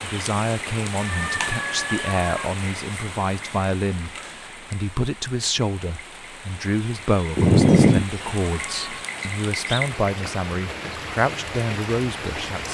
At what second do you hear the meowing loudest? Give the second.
8 s.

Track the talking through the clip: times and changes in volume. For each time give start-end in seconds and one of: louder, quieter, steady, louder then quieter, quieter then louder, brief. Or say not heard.
0.0-12.6 steady.